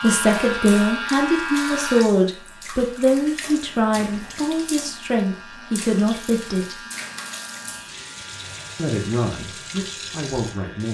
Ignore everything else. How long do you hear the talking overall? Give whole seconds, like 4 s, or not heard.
9 s.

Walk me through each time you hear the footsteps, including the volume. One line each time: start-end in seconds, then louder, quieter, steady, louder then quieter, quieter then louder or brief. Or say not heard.
not heard.